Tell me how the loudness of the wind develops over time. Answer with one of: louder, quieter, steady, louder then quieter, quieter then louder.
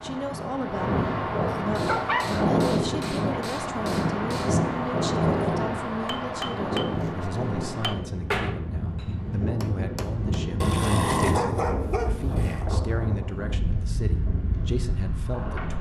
quieter.